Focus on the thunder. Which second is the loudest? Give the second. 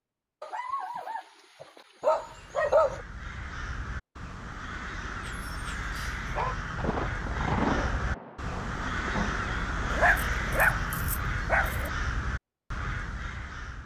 8 s.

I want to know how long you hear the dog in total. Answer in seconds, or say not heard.
6 s.